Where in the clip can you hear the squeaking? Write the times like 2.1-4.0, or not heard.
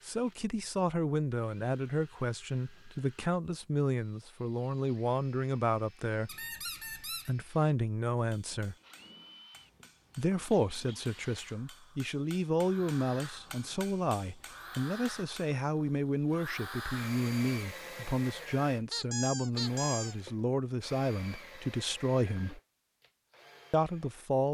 6.2-7.3, 18.9-20.1.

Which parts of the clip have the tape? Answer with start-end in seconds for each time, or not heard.
not heard.